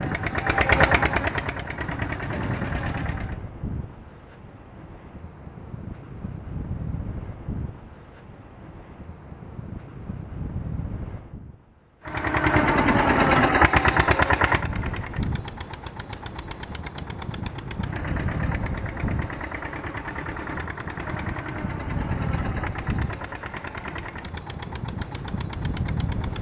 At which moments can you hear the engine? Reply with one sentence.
You can hear the engine from 0.0 to 3.4 s and from 12.1 to 26.3 s.